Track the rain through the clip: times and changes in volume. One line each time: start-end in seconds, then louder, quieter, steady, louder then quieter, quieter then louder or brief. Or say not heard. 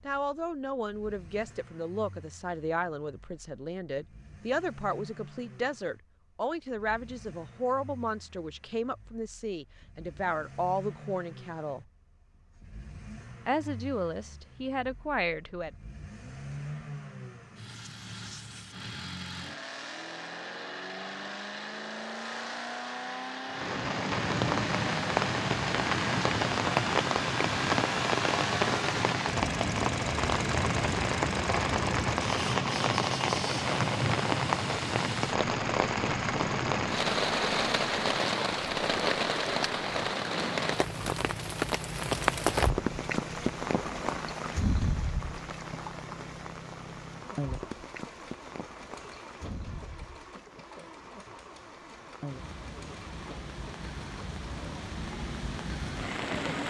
23.5-56.6 quieter.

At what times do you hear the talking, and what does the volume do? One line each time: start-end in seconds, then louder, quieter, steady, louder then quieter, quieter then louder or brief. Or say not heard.
0.1-11.8 steady
13.4-15.7 brief.